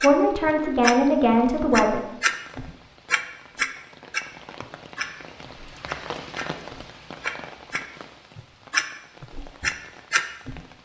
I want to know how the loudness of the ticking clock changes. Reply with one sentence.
The volume of the ticking clock goes down, then up.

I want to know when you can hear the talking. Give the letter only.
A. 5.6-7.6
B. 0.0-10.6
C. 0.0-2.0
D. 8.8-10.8
C.